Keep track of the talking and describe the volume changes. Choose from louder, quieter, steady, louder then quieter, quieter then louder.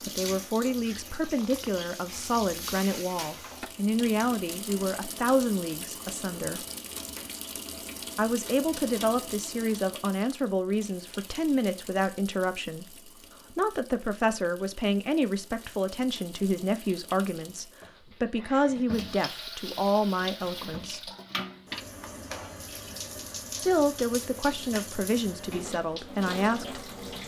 steady.